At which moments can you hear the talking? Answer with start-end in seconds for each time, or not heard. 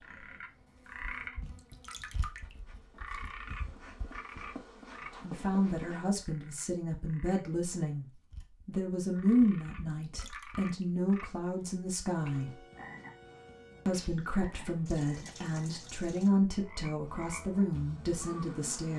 5.2-8.1, 8.7-12.5, 13.8-18.9.